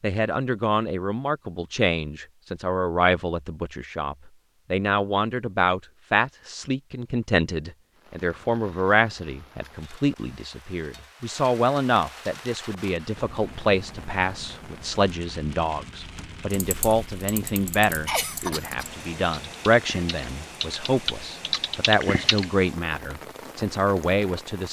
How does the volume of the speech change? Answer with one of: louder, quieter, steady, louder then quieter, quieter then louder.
steady.